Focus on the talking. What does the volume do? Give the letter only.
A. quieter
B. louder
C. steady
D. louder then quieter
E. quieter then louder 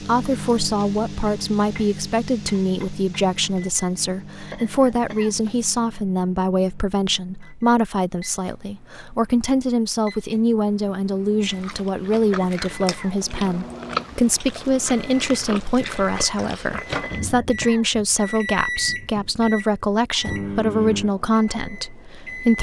C.